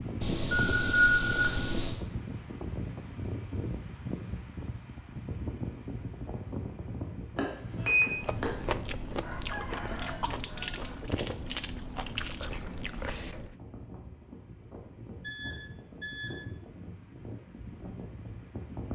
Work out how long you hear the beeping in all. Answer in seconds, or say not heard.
4 s.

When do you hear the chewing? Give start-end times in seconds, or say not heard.
8.2-13.6.